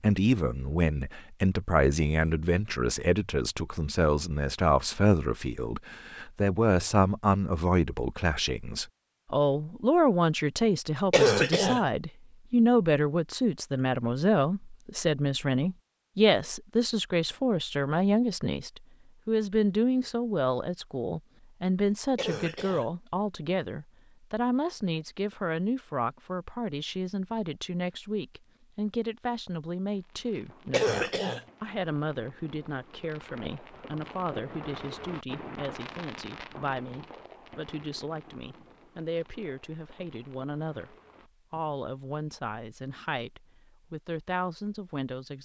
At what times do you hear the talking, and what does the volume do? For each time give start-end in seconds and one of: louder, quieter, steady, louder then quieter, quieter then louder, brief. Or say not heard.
0.0-45.3 quieter.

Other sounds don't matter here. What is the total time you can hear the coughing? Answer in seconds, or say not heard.
2 s.